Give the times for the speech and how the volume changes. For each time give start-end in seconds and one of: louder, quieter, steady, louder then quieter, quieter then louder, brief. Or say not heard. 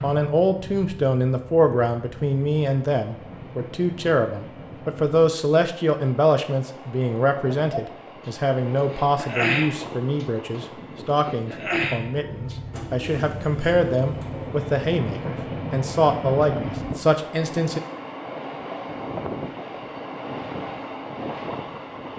0.0-17.8 steady.